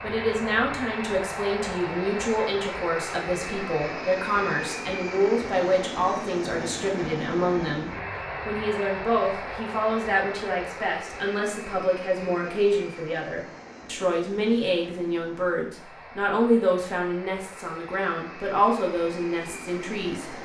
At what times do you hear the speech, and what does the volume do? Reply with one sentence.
You can hear the speech from 0.0 to 20.4 s, at a steady volume.